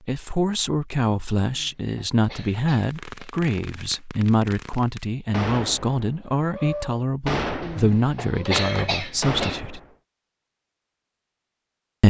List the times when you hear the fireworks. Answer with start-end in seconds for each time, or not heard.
2.7-9.9.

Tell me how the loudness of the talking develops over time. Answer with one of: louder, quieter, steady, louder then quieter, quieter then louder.
steady.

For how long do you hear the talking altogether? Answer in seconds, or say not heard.
10 s.